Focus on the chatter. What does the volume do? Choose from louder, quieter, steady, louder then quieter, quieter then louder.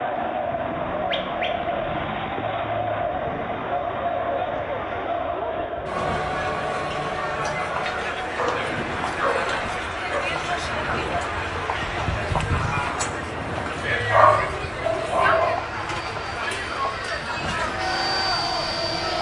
steady.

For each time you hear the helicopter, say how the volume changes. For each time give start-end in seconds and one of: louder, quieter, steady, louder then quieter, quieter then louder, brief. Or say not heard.
15.1-19.1 louder.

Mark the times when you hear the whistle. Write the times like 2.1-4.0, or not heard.
not heard.